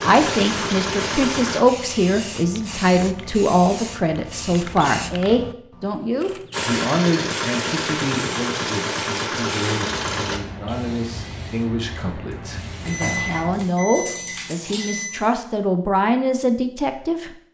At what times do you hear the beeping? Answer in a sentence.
The beeping can be heard from 12.8 to 15.1 s.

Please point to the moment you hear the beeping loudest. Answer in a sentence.
The volume of the beeping peaks at 13 seconds.